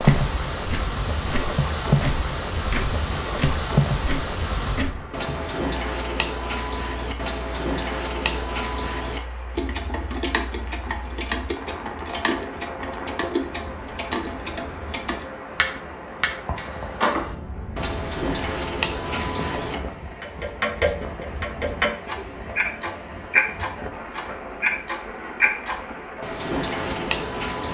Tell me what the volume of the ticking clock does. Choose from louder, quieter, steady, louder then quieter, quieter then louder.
louder.